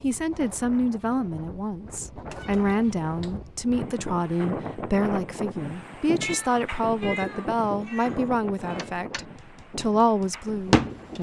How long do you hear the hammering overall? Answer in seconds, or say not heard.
2 s.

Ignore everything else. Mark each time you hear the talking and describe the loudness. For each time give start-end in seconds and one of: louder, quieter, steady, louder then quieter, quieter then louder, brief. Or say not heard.
0.0-11.1 steady.